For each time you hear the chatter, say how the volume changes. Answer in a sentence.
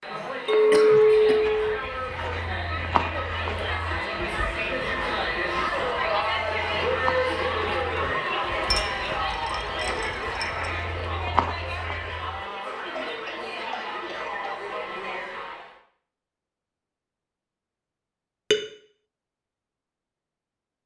You can hear the chatter from 0.0 to 15.8 s, getting louder then quieter.